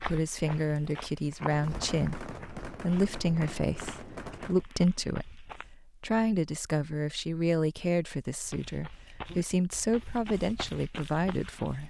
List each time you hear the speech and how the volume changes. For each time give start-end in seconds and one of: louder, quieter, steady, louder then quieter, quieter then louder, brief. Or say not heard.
0.0-11.8 steady.